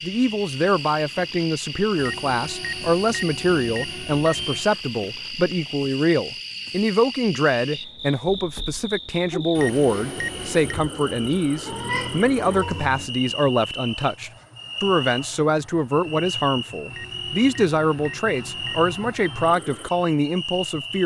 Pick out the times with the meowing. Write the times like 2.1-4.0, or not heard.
11.7-13.1.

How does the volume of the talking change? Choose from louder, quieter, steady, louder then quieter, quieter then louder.
steady.